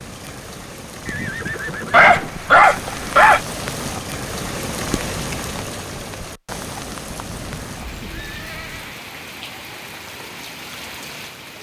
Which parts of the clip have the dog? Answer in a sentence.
The dog can be heard from 1.9 to 3.5 s.